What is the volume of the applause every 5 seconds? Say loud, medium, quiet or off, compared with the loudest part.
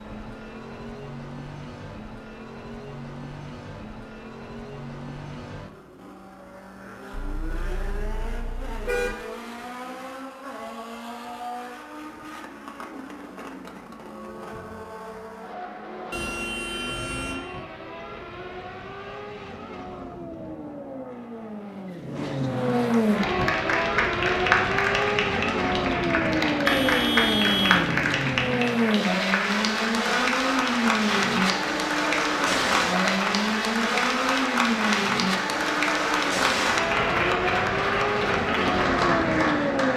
off, off, off, off, loud, loud, loud, loud.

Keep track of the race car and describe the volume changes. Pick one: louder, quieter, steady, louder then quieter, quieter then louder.
louder.